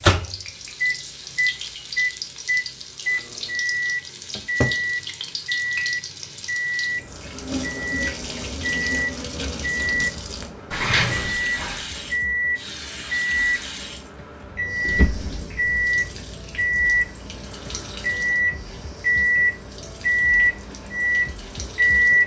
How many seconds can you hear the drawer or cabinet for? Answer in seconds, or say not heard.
2 s.